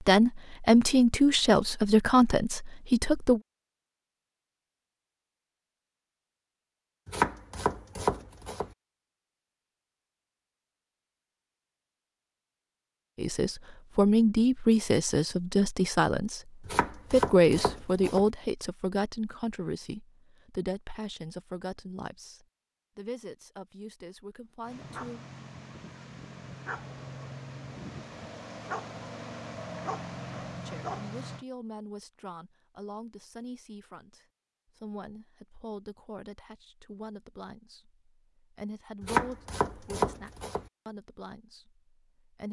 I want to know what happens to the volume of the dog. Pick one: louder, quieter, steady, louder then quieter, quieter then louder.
louder.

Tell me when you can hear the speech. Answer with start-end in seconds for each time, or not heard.
0.1-3.4, 13.2-25.2, 30.6-42.4.